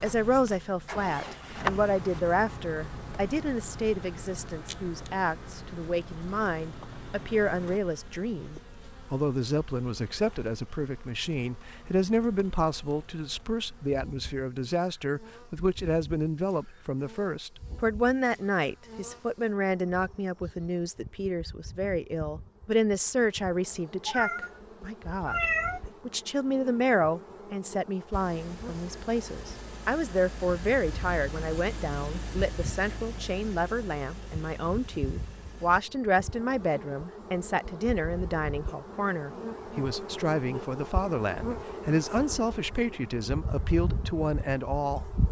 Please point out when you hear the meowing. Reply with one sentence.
You can hear the meowing from 24.1 to 25.9 s.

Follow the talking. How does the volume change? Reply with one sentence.
The volume of the talking stays about the same.